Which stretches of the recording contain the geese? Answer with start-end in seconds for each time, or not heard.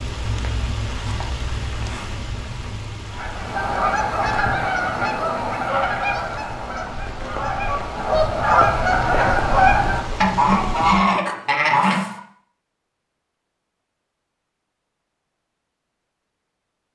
3.1-12.2.